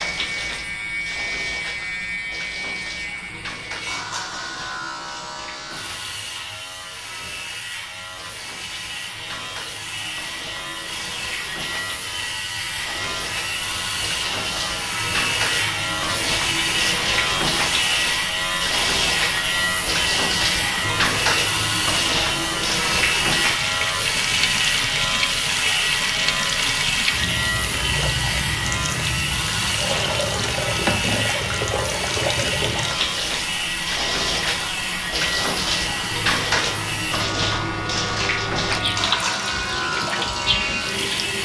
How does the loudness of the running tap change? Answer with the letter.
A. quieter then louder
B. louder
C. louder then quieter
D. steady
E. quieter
B.